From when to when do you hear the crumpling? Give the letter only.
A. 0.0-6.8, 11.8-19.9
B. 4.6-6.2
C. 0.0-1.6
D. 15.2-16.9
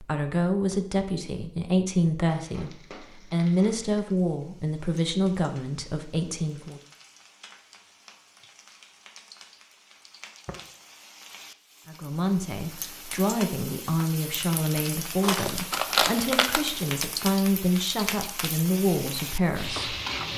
D.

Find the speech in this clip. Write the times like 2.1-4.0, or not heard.
0.0-6.8, 11.8-19.9.